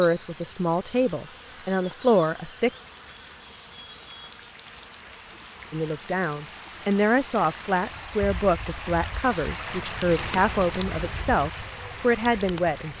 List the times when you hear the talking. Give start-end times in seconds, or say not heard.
0.0-2.7, 5.7-12.9.